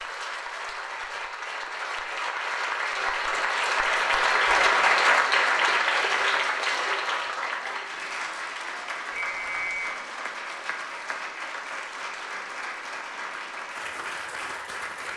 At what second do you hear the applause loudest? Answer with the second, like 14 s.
5 s.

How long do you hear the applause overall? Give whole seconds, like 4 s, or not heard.
15 s.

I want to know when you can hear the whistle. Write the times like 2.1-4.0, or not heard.
9.1-10.0.